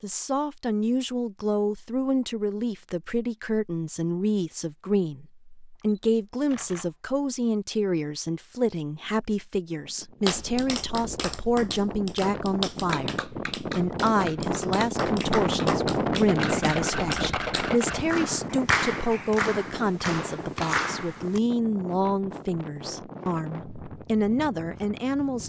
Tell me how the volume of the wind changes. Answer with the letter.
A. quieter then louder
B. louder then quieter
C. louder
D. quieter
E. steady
B.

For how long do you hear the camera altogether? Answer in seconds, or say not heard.
3 s.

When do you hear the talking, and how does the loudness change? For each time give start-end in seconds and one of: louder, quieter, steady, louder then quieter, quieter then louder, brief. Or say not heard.
0.0-25.4 steady.